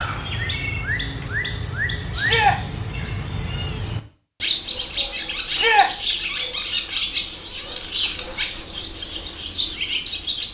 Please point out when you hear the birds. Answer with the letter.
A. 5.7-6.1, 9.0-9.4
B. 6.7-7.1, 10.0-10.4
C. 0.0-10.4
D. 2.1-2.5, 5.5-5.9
C.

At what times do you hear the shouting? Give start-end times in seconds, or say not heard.
2.1-2.5, 5.5-5.9.